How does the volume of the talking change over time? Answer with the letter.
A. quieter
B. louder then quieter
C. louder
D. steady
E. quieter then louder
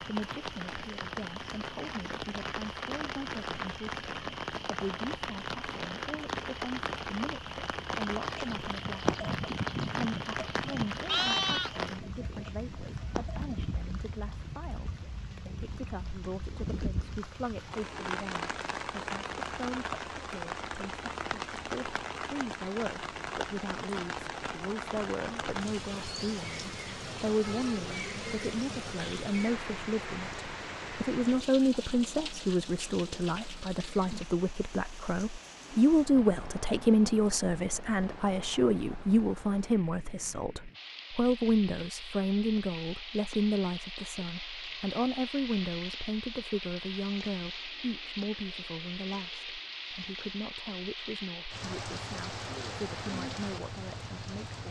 B.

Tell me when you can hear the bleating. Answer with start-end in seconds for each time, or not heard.
8.4-13.8.